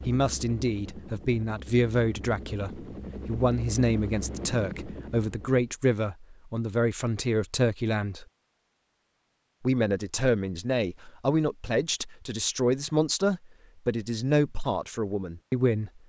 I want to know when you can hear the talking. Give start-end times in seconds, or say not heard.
0.1-8.2, 9.6-16.0.